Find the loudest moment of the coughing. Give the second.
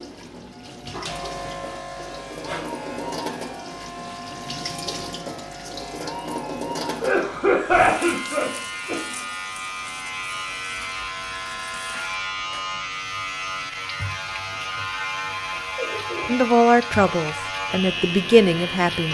8 s.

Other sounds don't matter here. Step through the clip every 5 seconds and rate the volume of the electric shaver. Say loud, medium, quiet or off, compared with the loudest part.
medium, medium, loud, loud.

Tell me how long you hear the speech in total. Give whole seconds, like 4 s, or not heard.
3 s.